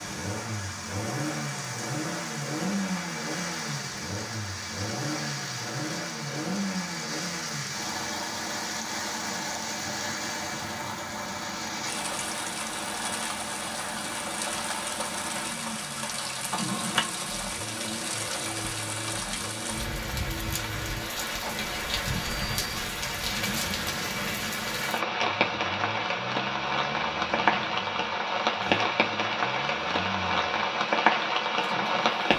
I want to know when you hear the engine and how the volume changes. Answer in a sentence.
You can hear the engine from 0.0 to 32.3 s, getting quieter.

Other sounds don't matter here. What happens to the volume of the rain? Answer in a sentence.
The volume of the rain goes up.